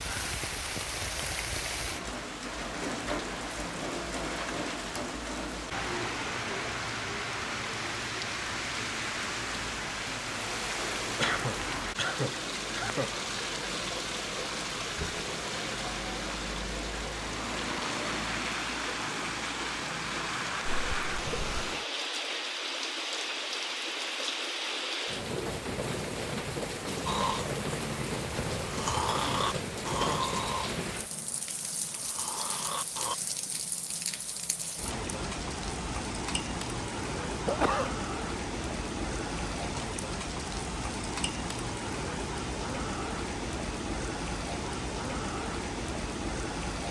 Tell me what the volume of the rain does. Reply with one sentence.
The volume of the rain stays about the same.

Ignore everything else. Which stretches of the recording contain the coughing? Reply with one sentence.
The coughing can be heard from 11.2 to 13.1 s, from 20.6 to 21.6 s and from 37.2 to 37.9 s.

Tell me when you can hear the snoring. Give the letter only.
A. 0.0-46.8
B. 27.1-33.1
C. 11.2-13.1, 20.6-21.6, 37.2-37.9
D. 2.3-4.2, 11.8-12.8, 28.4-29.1
B.